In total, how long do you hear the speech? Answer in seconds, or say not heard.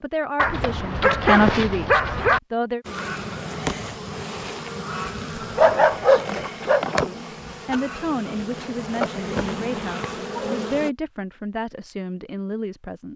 9 s.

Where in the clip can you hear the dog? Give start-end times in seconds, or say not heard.
0.3-2.4, 5.3-6.8, 9.2-10.6.